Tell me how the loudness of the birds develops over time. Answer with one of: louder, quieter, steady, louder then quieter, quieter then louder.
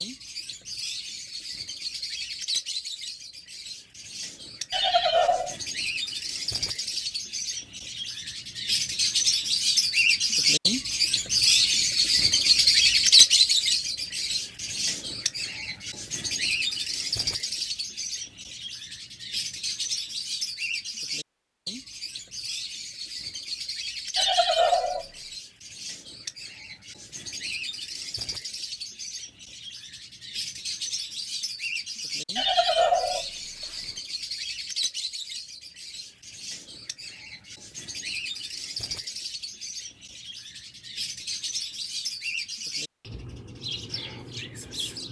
louder then quieter.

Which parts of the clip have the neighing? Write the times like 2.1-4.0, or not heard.
4.7-5.5, 24.1-25.1, 32.4-33.2.